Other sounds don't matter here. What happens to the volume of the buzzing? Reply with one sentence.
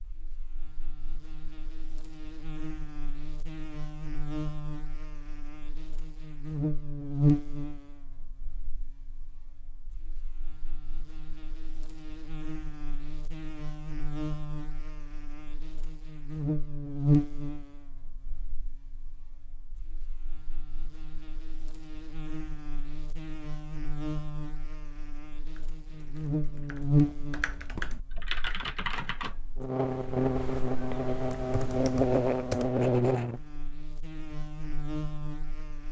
The loudness of the buzzing goes down, then up.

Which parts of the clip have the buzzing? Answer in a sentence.
You can hear the buzzing from 0.0 to 35.8 s.